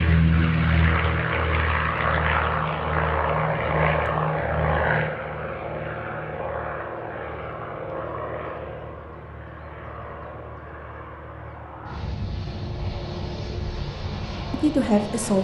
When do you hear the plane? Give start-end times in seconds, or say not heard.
0.0-15.3.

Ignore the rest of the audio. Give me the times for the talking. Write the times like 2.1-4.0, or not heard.
14.5-15.3.